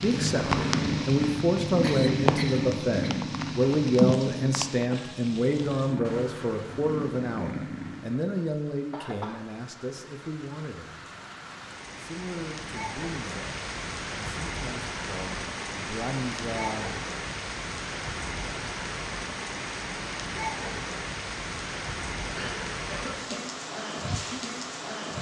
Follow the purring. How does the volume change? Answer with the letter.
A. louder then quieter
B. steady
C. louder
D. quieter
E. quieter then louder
D.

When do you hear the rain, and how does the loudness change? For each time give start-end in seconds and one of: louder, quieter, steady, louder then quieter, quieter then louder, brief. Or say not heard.
0.0-25.1 quieter then louder.